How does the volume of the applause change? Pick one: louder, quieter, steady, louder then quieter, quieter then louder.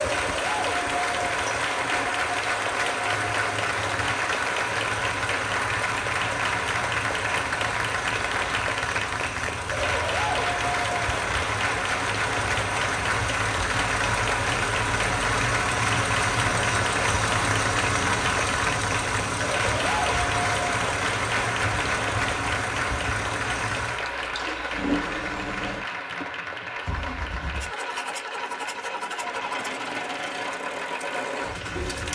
quieter.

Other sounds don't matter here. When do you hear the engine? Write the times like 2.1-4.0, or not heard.
0.0-32.1.